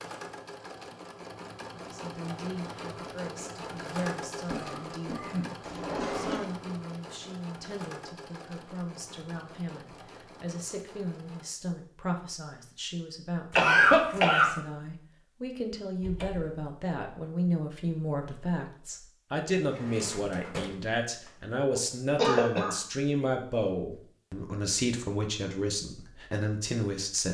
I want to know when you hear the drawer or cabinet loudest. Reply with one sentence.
The volume of the drawer or cabinet peaks at 6 seconds.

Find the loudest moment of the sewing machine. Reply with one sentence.
The loudest moment of the sewing machine is at 4 seconds.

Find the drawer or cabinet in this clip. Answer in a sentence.
The drawer or cabinet can be heard from 5.6 to 6.5 s, from 16.0 to 16.6 s and from 19.6 to 21.5 s.